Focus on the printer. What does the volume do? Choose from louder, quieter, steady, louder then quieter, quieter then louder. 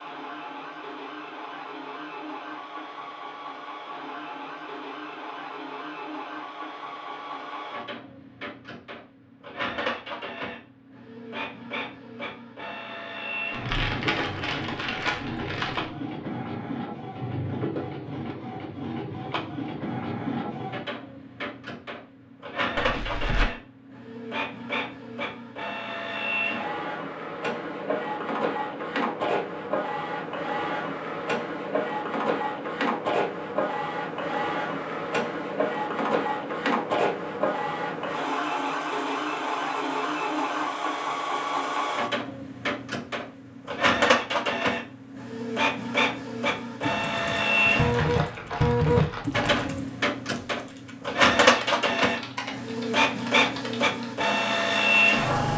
louder.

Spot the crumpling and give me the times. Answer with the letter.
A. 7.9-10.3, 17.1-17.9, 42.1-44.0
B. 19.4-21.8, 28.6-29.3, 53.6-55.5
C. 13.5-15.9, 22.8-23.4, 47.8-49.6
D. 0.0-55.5
C.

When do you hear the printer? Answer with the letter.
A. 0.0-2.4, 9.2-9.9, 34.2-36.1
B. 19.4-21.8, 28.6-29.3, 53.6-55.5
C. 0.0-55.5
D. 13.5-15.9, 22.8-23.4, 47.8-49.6
C.